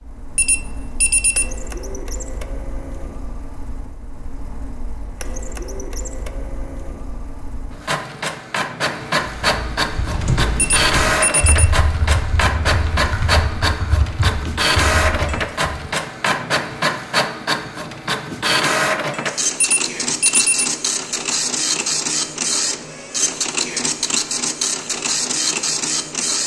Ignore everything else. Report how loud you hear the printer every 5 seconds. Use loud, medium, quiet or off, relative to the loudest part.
quiet, medium, loud, loud, loud, loud.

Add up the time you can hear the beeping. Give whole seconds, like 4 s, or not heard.
3 s.